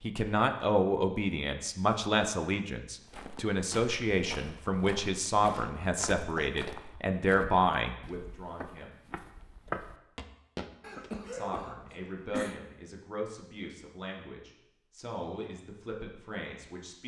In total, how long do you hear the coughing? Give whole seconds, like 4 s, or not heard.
3 s.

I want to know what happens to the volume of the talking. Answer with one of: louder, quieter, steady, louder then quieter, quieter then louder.
quieter.